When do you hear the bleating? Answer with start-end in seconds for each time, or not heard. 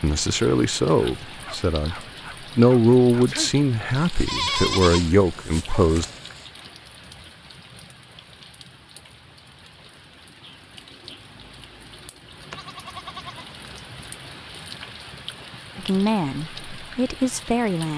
4.2-6.1, 12.5-13.9.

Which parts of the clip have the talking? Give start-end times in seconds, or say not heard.
0.0-1.9, 2.5-6.0, 15.8-17.9.